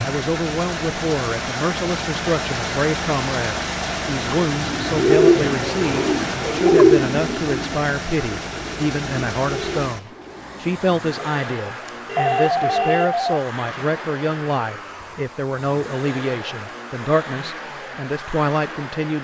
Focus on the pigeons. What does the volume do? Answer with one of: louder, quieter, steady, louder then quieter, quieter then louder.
quieter.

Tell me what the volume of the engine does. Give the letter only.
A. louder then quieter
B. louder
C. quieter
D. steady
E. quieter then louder
C.